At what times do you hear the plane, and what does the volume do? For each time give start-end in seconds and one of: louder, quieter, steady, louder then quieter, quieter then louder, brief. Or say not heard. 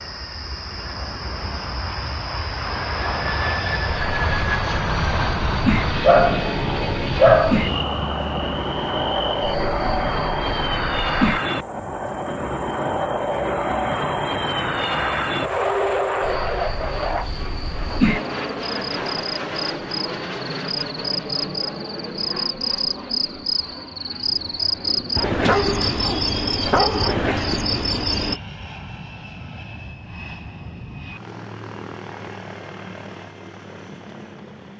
0.0-34.7 quieter.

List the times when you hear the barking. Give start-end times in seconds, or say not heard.
6.0-7.7, 25.4-27.2.